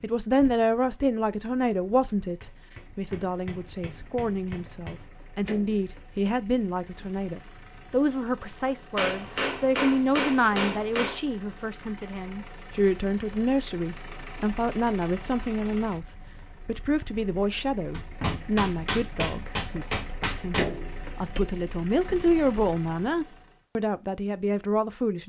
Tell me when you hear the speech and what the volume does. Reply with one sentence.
You can hear the speech from 0.0 to 25.2 s, at a steady volume.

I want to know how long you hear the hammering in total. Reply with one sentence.
You can hear the hammering for 8 seconds altogether.